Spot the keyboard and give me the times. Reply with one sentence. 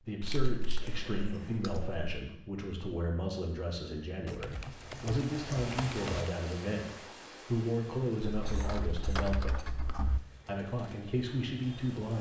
The keyboard can be heard from 0.2 to 2.1 s, from 4.2 to 6.3 s and from 8.4 to 10.2 s.